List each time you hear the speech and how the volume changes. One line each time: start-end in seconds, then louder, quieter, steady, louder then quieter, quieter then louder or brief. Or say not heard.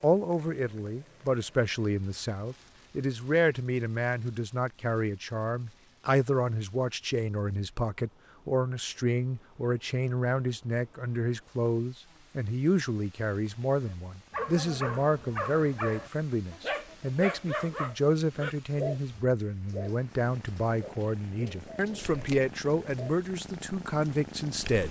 0.0-24.8 steady.